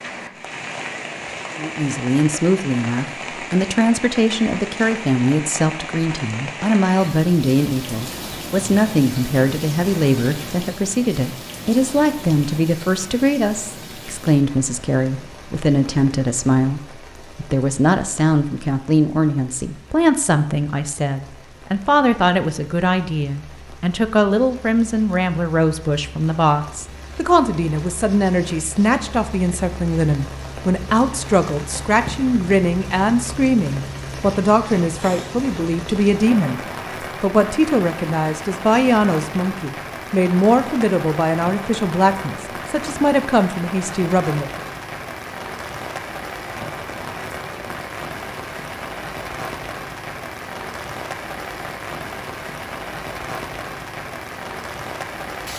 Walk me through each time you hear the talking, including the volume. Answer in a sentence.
The talking can be heard from 1.6 to 44.6 s, at a steady volume.